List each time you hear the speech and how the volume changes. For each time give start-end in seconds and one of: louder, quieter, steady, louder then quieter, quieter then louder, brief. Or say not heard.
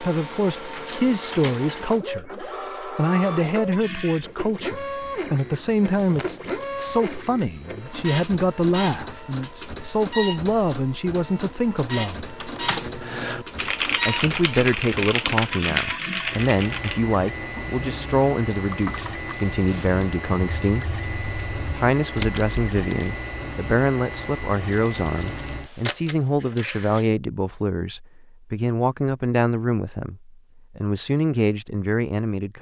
0.0-12.3 steady
14.1-20.9 steady
21.8-32.5 steady.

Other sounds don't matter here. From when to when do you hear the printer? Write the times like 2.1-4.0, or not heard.
0.0-27.1.